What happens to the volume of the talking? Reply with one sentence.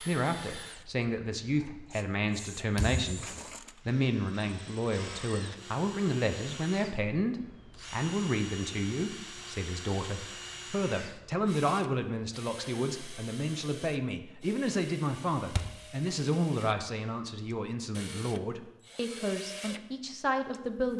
The loudness of the talking stays about the same.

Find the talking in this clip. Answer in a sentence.
The talking can be heard from 0.0 to 20.9 s.